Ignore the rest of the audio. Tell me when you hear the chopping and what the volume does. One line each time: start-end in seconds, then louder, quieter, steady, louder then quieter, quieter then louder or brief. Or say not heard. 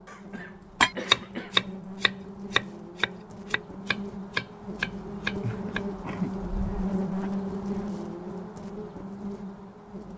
0.8-5.8 quieter.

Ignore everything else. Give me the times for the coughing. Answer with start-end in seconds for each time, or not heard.
0.1-1.6, 5.4-7.3.